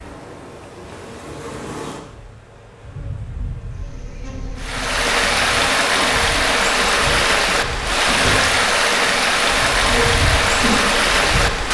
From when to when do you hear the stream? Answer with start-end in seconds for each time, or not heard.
4.5-11.6.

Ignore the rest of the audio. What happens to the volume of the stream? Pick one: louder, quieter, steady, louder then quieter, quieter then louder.
steady.